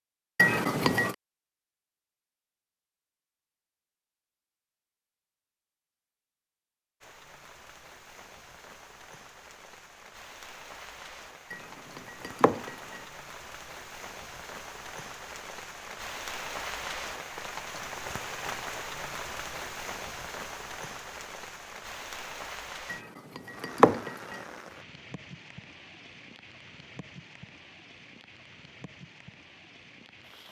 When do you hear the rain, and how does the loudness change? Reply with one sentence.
The rain can be heard from 7.0 to 30.4 s, getting louder then quieter.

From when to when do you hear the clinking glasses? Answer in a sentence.
The clinking glasses can be heard from 0.3 to 1.1 s, from 11.5 to 13.0 s and from 22.9 to 24.4 s.